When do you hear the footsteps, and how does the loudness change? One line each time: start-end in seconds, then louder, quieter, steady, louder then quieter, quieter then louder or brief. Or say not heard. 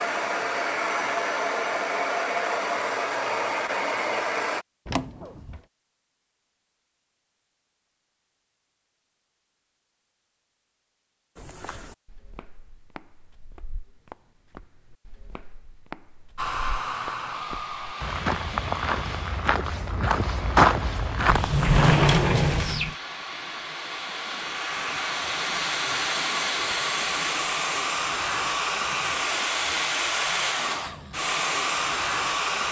11.3-22.1 louder.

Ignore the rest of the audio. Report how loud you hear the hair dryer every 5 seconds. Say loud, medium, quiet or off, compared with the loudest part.
loud, off, off, medium, medium, loud, loud.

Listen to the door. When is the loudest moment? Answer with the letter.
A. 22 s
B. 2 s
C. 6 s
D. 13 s
A.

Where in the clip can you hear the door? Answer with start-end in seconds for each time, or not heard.
4.8-5.6, 21.2-22.9.